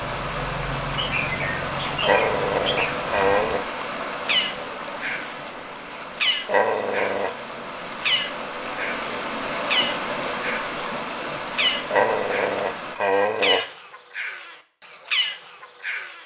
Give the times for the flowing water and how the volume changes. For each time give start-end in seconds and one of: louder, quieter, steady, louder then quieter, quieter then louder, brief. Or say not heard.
0.0-12.9 quieter then louder.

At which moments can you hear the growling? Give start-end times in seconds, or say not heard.
2.0-3.6, 6.5-7.5, 11.9-13.8.